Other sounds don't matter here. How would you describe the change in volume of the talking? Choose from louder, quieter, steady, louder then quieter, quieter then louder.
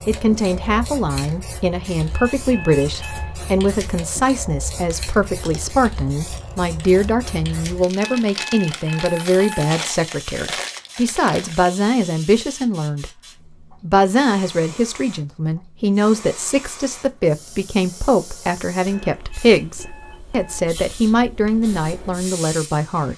steady.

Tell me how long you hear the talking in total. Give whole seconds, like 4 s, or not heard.
22 s.